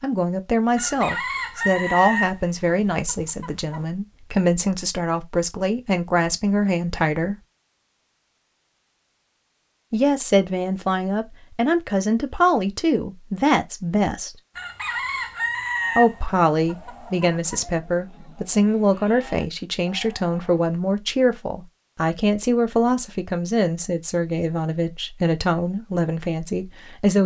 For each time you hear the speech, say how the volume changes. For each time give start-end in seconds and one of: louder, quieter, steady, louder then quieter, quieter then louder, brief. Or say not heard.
0.0-7.3 quieter then louder
9.9-14.3 steady
15.9-27.2 steady.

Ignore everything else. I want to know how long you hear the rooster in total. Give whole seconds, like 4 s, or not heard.
6 s.